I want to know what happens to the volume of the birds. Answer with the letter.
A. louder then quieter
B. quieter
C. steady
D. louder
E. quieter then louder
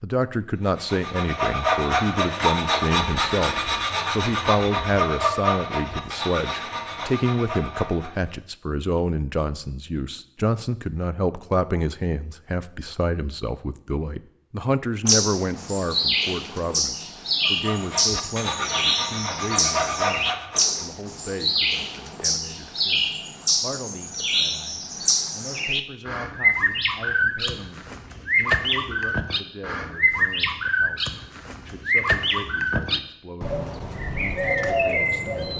C.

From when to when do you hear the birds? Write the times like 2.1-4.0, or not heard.
15.1-35.5.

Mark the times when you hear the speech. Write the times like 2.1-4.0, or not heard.
0.0-35.5.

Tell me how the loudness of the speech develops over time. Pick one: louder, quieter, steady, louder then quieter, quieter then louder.
quieter.